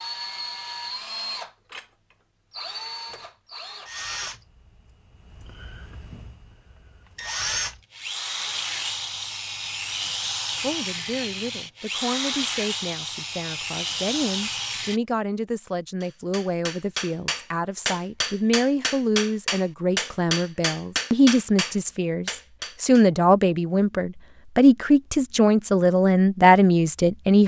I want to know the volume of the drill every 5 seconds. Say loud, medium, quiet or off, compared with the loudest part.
medium, loud, loud, off, off, off.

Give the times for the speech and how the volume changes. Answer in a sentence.
The speech can be heard from 10.5 to 27.4 s, getting louder.